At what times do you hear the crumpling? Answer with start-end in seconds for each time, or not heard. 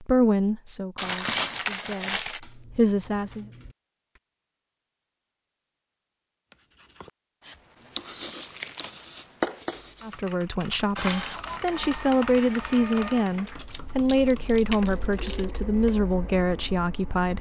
0.9-2.4, 8.2-9.1, 13.4-15.4.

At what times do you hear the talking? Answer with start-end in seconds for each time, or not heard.
0.0-3.5, 10.0-17.3.